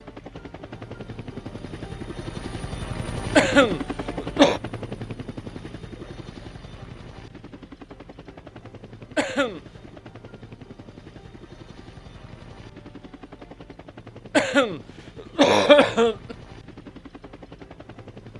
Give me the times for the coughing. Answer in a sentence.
The coughing can be heard from 3.4 to 4.6 s, from 9.2 to 9.6 s and from 14.3 to 16.4 s.